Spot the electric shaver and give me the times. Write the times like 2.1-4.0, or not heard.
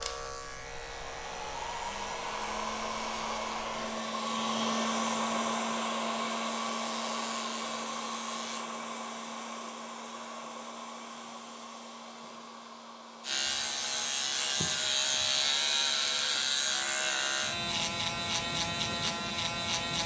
0.0-8.7, 13.2-20.0.